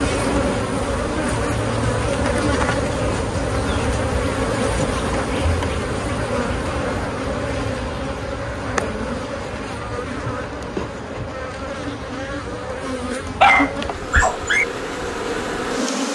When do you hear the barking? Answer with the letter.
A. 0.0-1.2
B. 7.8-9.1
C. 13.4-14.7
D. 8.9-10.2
C.